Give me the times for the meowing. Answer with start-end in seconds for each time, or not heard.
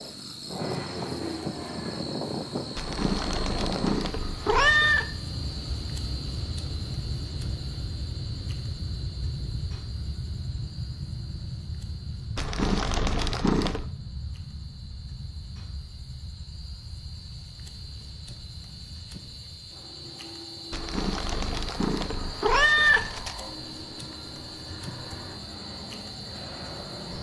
2.8-5.0, 12.3-13.8, 20.7-23.4.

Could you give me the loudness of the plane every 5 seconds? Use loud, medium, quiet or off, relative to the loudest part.
loud, loud, medium, quiet, medium, medium.